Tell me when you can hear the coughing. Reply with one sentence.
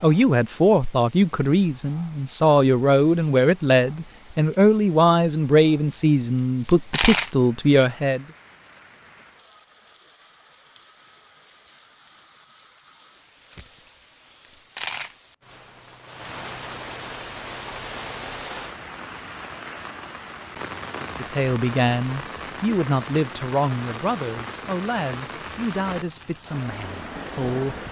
You can't hear the coughing here.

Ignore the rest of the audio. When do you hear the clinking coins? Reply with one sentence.
You can hear the clinking coins from 6.6 to 7.3 s and from 14.4 to 15.2 s.